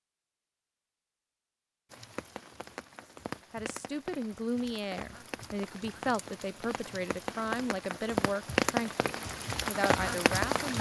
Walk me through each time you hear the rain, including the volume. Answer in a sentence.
The rain can be heard from 1.9 to 10.7 s, getting louder.